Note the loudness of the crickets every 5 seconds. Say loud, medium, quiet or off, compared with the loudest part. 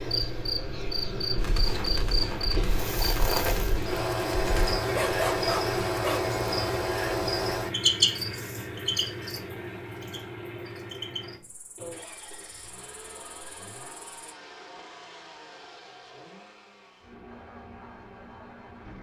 loud, loud, quiet, off.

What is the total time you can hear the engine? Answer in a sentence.
You can hear the engine for 19 seconds altogether.